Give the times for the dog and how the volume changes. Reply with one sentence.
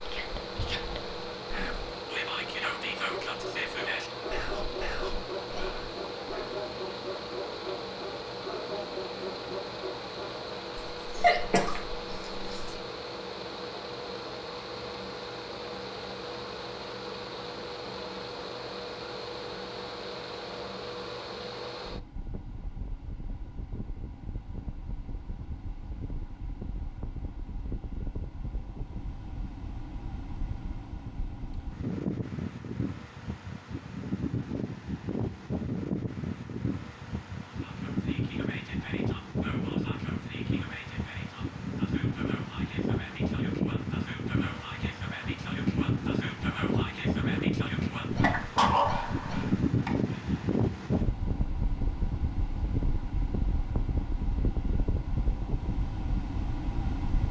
You can hear the dog from 3.0 to 10.4 s, at a steady volume.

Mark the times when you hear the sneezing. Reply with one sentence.
The sneezing can be heard from 11.1 to 12.7 s and from 48.2 to 50.0 s.